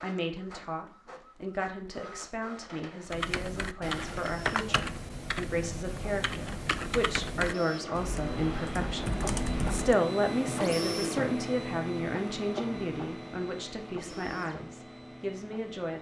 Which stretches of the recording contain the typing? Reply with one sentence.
The typing can be heard from 3.0 to 9.9 s.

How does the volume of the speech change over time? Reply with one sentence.
The volume of the speech goes up, then down.